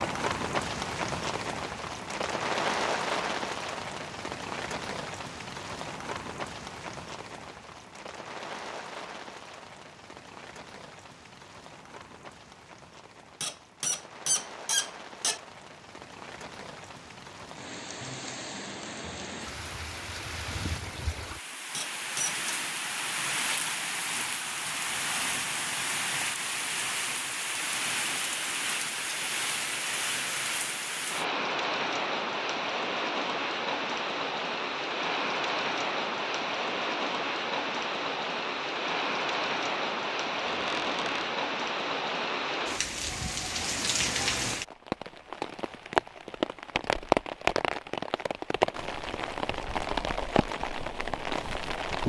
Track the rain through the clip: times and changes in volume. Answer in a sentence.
You can hear the rain from 0.0 to 52.0 s, getting quieter then louder.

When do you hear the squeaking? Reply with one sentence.
The squeaking can be heard from 13.4 to 15.4 s, from 21.7 to 22.4 s and from 40.5 to 41.3 s.